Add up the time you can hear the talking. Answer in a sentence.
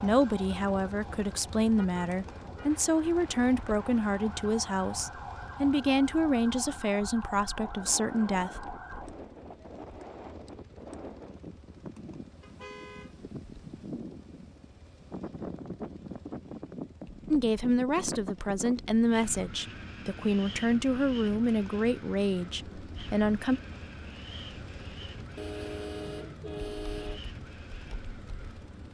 You can hear the talking for 15 seconds altogether.